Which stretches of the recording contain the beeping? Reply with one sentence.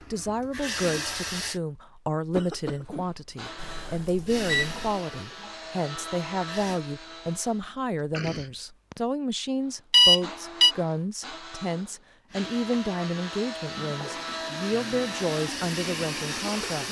You can hear the beeping from 3.5 to 5.0 s and from 9.9 to 10.8 s.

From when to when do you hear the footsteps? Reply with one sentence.
The footsteps can't be heard in this clip.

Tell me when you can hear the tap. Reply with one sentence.
The tap can be heard from 0.0 to 1.6 s, from 4.2 to 6.8 s and from 12.2 to 16.8 s.